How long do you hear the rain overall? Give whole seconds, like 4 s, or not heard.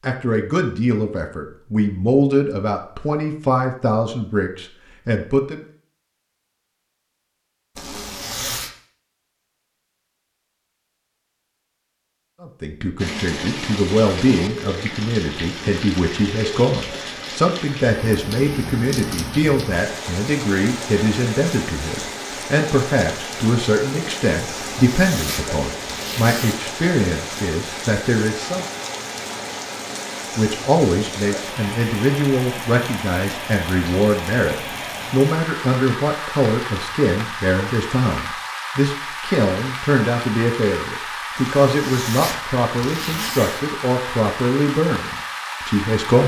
33 s.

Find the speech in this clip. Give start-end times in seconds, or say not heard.
0.0-5.6, 12.4-28.6, 30.4-46.2.